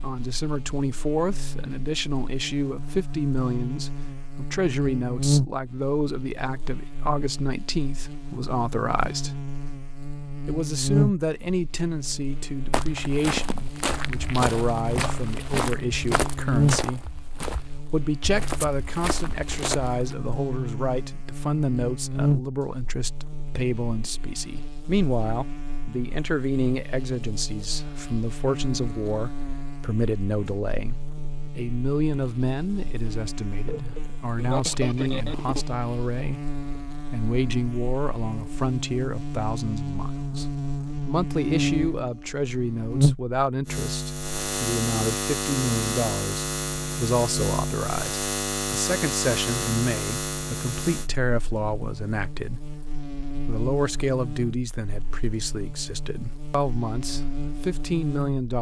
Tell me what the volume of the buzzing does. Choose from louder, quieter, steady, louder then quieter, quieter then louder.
quieter then louder.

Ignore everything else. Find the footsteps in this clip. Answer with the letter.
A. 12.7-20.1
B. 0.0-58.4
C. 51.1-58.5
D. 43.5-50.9
A.